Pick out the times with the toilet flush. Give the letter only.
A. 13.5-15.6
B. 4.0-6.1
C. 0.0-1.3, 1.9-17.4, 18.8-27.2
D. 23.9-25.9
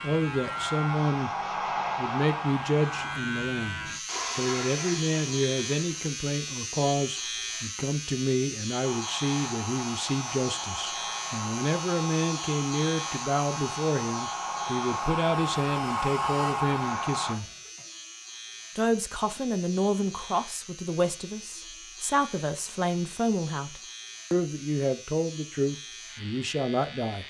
B.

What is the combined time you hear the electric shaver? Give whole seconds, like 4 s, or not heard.
27 s.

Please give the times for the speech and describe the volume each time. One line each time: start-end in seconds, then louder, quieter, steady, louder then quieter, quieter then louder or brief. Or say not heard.
0.0-1.3 brief
1.9-17.4 steady
18.8-27.2 steady.